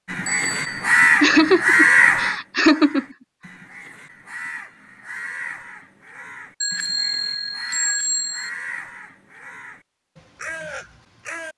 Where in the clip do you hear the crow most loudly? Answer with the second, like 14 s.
2 s.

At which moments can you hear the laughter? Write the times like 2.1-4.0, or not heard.
1.2-3.0.